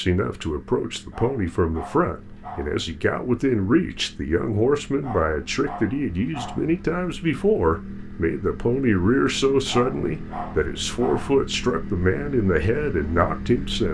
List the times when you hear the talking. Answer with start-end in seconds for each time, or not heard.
0.0-13.8.